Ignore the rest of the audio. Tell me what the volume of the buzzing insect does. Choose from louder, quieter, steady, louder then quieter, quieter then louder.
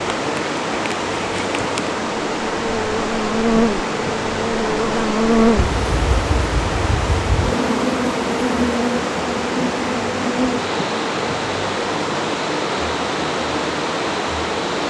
quieter.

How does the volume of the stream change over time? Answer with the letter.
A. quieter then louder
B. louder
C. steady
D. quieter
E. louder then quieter
C.